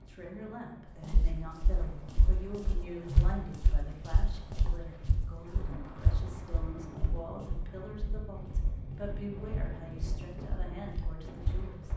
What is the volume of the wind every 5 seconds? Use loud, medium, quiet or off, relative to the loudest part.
medium, loud, loud.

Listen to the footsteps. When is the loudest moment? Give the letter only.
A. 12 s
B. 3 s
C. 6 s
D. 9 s
B.